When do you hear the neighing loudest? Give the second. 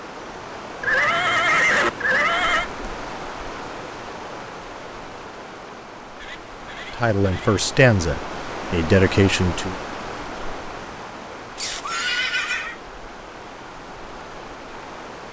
2 s.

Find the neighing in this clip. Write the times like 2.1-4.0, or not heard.
0.8-2.7, 6.2-7.7, 11.6-12.8.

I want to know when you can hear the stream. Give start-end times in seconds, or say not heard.
0.0-15.2.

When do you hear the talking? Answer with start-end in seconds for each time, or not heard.
6.9-9.8.